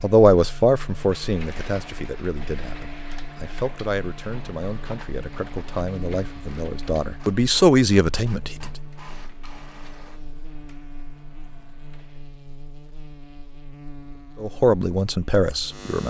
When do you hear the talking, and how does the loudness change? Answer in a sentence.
The talking can be heard from 0.0 to 8.7 s, getting quieter then louder; and briefly from 14.4 to 16.0 s.